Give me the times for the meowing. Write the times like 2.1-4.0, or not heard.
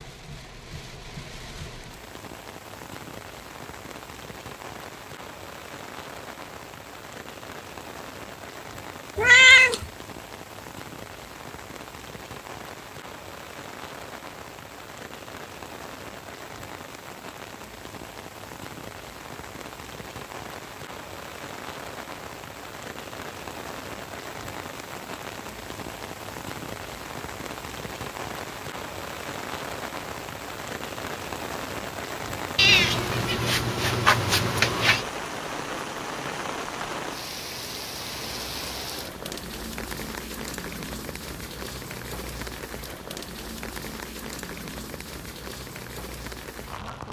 9.2-9.8, 32.5-35.0.